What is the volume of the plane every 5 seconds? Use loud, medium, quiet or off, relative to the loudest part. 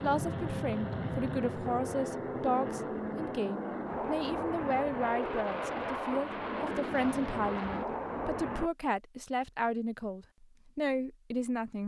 loud, loud, off.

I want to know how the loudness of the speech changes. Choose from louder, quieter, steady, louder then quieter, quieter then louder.
steady.